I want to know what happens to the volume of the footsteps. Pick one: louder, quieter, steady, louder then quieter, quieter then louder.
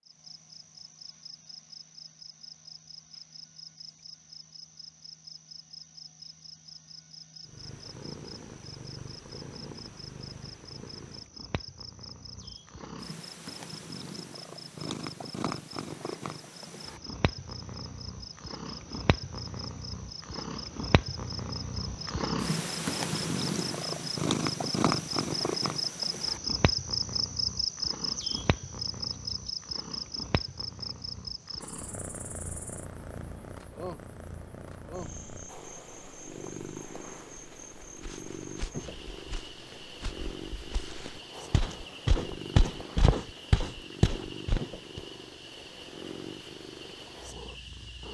louder.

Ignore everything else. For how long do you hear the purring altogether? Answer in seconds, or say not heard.
41 s.